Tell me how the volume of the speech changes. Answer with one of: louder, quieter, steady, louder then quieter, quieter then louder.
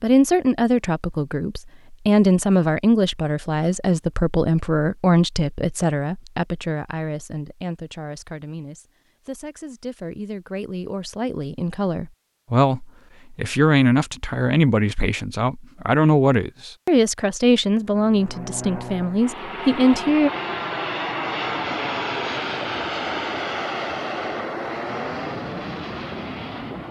quieter then louder.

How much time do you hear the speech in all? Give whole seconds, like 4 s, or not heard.
20 s.